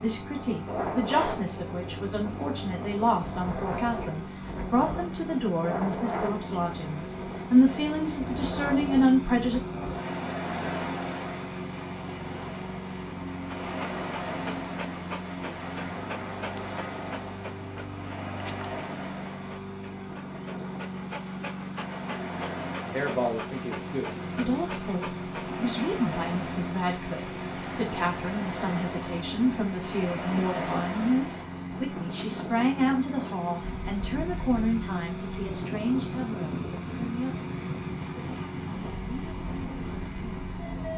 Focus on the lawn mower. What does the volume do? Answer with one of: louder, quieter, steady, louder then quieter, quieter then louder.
steady.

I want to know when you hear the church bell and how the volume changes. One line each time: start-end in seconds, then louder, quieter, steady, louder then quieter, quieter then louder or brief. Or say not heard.
not heard.